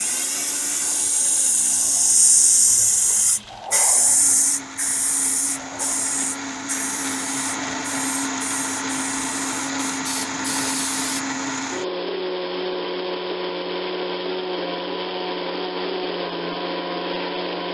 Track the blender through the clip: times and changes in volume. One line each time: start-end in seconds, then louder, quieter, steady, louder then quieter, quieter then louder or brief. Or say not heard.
0.0-17.7 louder.